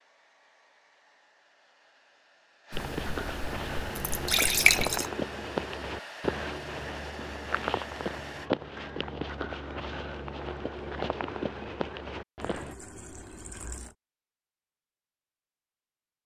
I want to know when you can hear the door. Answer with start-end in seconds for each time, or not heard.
not heard.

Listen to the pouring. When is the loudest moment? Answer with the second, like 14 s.
5 s.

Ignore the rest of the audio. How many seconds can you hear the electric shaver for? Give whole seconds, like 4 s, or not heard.
not heard.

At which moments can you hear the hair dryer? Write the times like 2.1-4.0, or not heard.
0.0-8.5.